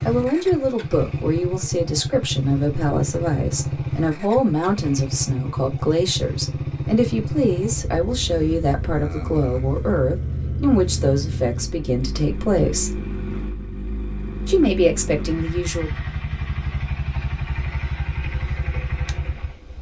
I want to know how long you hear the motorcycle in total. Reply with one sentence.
You can hear the motorcycle for 20 seconds altogether.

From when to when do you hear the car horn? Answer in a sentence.
You can't hear the car horn here.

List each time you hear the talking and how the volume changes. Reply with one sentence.
You can hear the talking from 0.1 to 13.0 s, at a steady volume; and briefly from 14.4 to 15.9 s.